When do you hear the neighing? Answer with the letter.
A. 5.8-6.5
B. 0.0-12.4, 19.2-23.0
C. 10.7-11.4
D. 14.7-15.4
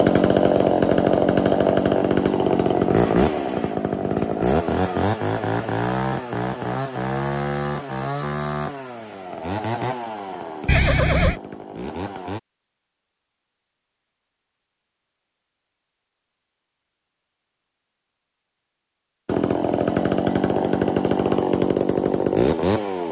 C.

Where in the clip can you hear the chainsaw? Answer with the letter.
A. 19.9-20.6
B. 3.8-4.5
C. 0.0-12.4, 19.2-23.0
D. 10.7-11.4
C.